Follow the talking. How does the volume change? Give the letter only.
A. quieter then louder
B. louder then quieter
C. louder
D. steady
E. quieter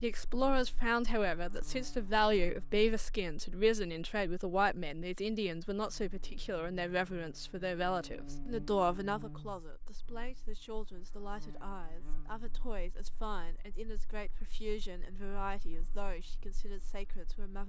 E.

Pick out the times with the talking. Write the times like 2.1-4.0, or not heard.
0.0-17.6.